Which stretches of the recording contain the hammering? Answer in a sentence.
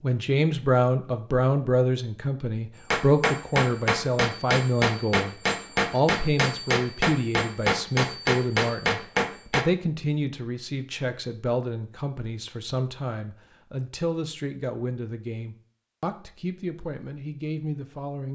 The hammering can be heard from 2.9 to 9.7 s.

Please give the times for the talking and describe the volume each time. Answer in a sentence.
The talking can be heard from 0.0 to 18.3 s, getting quieter.